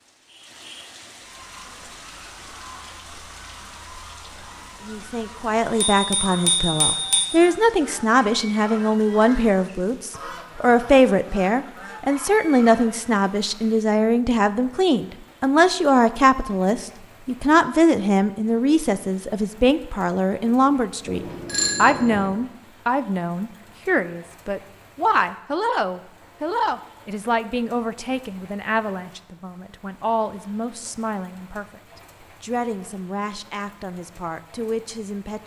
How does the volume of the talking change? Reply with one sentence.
The loudness of the talking goes down.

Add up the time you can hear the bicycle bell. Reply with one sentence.
The bicycle bell can be heard for 3 seconds in total.